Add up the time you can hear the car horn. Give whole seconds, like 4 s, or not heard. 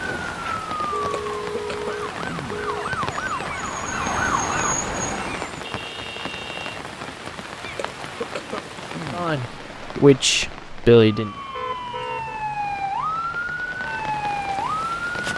4 s.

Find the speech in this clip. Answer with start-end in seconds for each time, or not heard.
9.1-11.3.